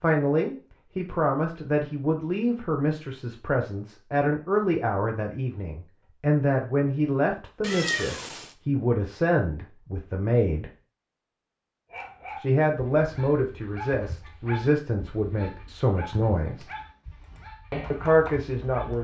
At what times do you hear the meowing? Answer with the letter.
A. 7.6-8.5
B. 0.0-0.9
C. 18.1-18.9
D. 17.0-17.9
A.